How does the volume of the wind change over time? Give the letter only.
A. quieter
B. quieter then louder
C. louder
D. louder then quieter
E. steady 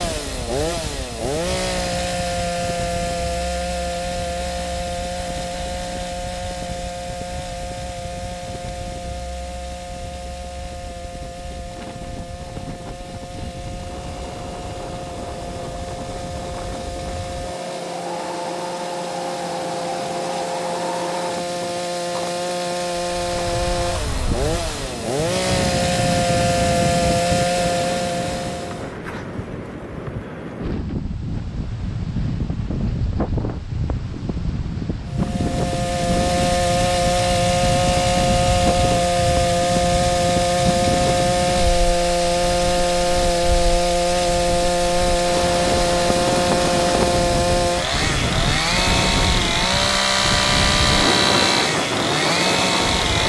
C.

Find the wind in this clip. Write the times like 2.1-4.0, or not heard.
0.0-53.2.